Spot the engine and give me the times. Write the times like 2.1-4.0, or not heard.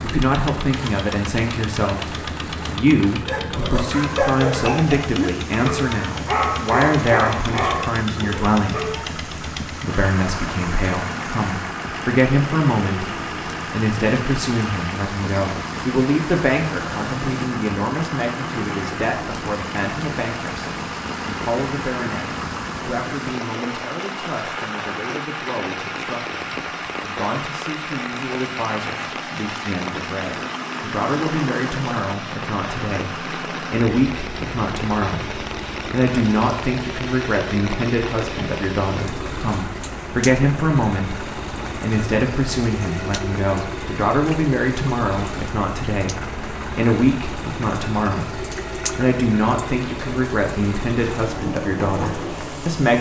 0.0-52.9.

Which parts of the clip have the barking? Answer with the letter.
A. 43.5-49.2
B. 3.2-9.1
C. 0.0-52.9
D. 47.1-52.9
B.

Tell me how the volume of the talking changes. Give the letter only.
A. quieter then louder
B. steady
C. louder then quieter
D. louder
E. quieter
A.